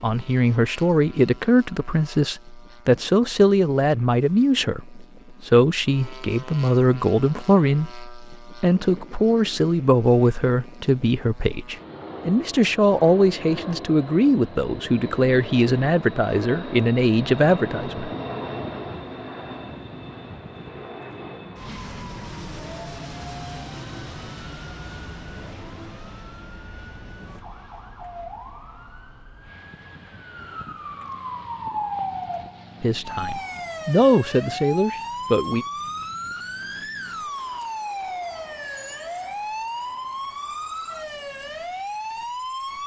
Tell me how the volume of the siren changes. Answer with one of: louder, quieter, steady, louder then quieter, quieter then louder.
louder.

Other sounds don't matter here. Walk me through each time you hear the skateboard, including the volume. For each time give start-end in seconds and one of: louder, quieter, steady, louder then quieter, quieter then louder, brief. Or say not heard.
not heard.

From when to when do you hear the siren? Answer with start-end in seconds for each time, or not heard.
22.5-42.8.